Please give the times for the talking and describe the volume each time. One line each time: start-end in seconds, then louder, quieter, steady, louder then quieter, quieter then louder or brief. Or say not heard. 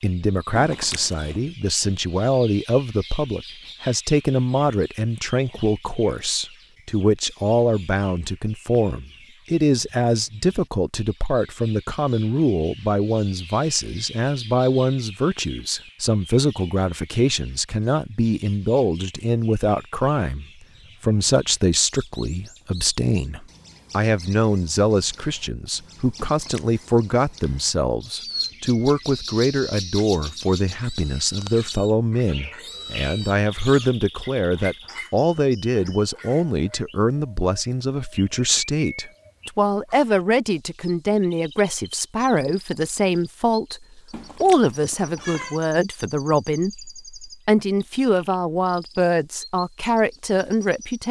0.0-51.0 steady.